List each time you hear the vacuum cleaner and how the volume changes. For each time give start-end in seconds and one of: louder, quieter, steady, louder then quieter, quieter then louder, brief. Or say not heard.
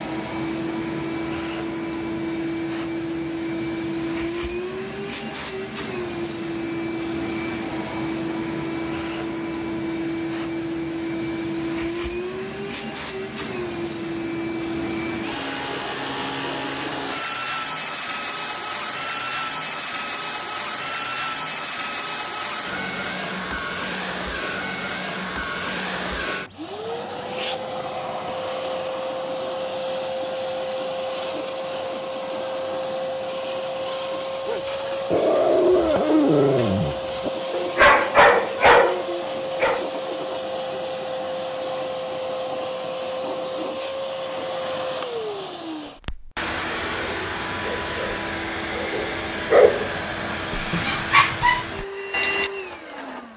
0.0-53.3 steady.